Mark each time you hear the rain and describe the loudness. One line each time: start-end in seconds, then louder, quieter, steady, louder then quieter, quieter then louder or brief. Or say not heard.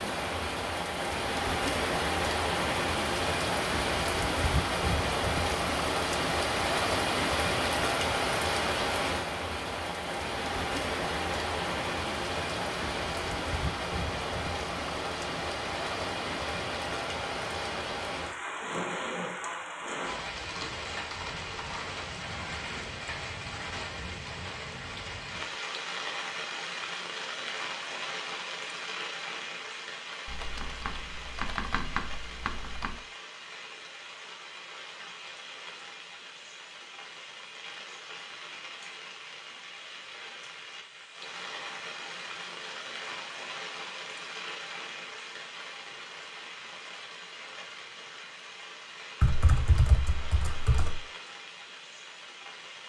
0.0-52.8 quieter.